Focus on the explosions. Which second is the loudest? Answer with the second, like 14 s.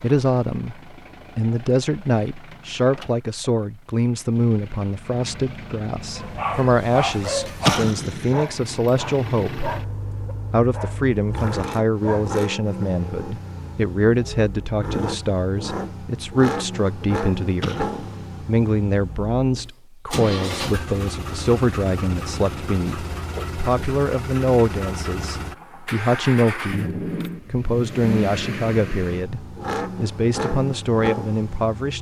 8 s.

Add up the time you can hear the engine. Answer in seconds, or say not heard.
32 s.